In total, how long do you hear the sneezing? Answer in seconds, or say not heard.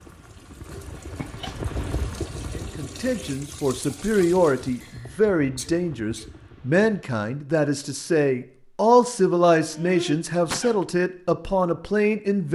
3 s.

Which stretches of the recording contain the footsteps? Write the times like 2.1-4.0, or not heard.
not heard.